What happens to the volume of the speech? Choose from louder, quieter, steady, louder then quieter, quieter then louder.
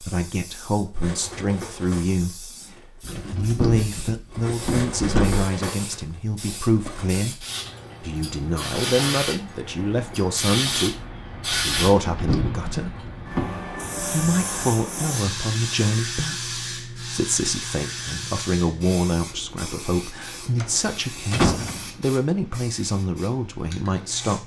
steady.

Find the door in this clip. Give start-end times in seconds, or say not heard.
3.0-5.5, 11.8-13.5, 20.6-21.9.